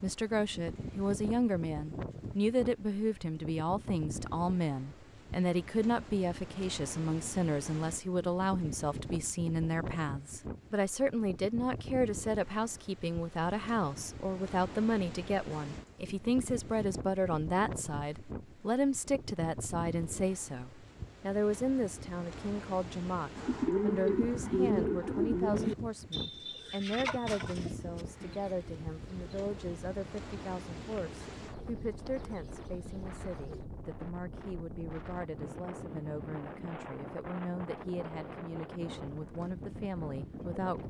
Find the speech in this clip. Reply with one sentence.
The speech can be heard from 0.0 to 40.8 s.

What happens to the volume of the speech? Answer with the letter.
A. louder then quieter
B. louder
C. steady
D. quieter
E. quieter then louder
D.